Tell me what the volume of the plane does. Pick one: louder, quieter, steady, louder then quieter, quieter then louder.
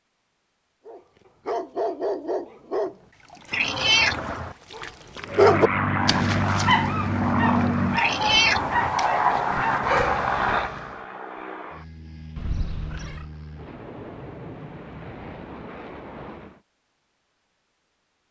quieter.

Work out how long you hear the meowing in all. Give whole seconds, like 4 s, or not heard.
3 s.